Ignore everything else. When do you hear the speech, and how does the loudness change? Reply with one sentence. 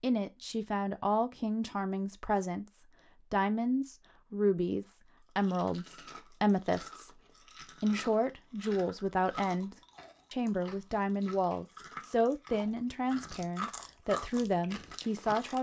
You can hear the speech from 0.0 to 15.5 s, at a steady volume.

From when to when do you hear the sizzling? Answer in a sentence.
You can't hear the sizzling here.